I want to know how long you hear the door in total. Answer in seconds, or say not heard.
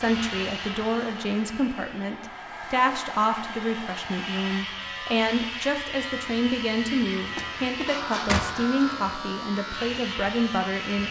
2 s.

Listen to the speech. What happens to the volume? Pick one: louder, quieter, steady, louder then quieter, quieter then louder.
steady.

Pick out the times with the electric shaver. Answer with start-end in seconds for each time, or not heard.
0.0-11.0.